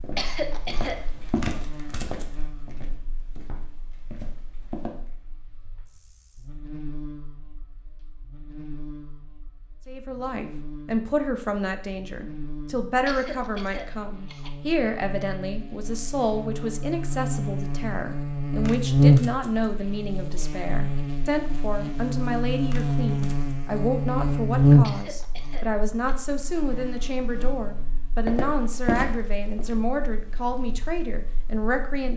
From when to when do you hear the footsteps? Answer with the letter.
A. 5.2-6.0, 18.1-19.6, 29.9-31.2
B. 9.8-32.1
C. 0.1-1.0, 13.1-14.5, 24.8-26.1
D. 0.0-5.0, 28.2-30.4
D.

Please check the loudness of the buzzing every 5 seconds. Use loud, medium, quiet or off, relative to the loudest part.
quiet, quiet, quiet, loud, loud, quiet, quiet.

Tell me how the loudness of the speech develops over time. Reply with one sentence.
The volume of the speech stays about the same.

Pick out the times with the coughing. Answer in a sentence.
You can hear the coughing from 0.1 to 1.0 s, from 13.1 to 14.5 s and from 24.8 to 26.1 s.